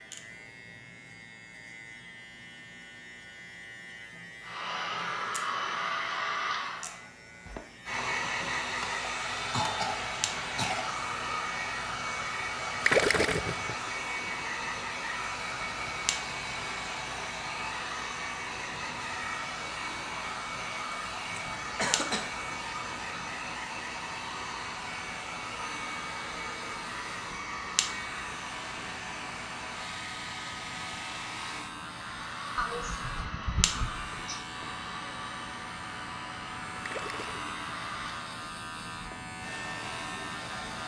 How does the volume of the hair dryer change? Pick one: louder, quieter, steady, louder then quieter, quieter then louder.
quieter.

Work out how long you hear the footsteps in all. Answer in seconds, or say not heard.
not heard.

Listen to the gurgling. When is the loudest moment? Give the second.
13 s.